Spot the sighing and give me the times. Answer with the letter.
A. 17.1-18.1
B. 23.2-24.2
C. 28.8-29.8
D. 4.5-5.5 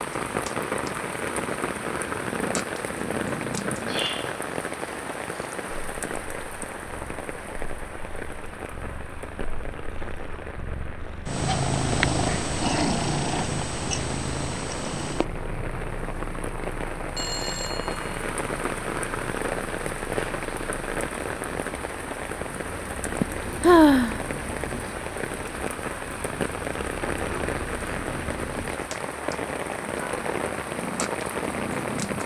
B.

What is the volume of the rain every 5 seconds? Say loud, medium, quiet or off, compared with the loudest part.
loud, medium, medium, loud, loud, loud, loud.